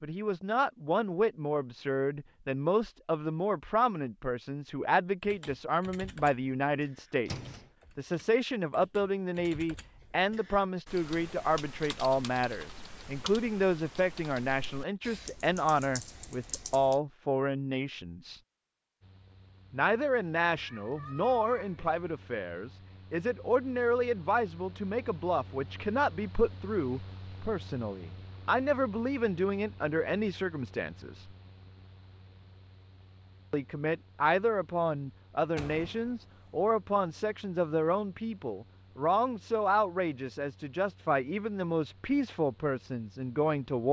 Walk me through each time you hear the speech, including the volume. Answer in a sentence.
The speech can be heard from 0.0 to 18.4 s, at a steady volume; from 19.7 to 31.3 s, at a steady volume; and from 33.5 to 43.8 s, at a steady volume.